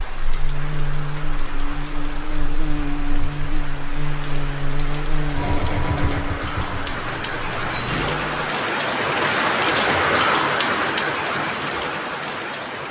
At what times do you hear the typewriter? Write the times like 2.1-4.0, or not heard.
not heard.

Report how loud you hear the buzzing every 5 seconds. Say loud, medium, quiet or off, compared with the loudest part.
loud, loud, off.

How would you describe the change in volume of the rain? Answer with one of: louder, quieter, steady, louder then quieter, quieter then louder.
louder.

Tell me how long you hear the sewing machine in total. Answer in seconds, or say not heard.
3 s.